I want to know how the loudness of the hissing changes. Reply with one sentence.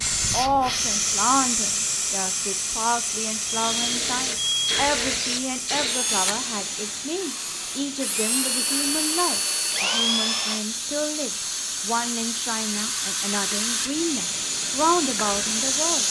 The volume of the hissing goes down, then up.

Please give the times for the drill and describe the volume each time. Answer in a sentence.
You can hear the drill from 3.5 to 10.7 s, getting quieter then louder.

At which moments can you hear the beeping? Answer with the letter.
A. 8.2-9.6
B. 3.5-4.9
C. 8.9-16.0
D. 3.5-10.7
B.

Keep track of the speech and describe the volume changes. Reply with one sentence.
The loudness of the speech stays about the same.